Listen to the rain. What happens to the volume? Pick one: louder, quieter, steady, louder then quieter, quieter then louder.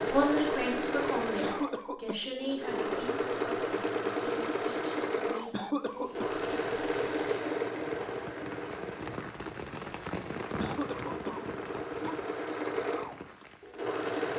louder then quieter.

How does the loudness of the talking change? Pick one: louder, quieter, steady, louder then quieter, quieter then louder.
quieter.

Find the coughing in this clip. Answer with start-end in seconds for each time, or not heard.
1.2-2.1, 5.3-6.2, 10.6-12.2.